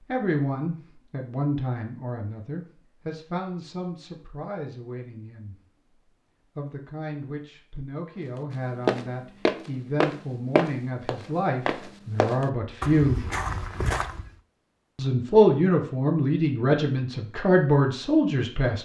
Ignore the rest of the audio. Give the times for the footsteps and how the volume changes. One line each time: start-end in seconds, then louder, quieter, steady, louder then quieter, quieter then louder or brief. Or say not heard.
8.8-14.3 quieter.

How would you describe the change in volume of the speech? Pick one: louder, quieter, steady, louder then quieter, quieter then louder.
quieter then louder.